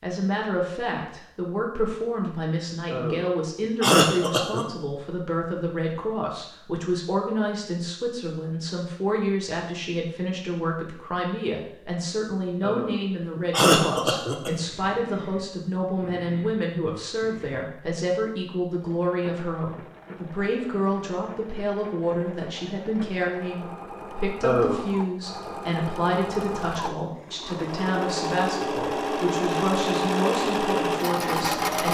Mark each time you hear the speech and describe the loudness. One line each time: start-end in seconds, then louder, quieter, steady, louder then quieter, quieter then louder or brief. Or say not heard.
0.0-31.8 steady.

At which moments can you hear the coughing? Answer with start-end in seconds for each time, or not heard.
2.9-4.7, 12.6-14.5, 24.4-24.9.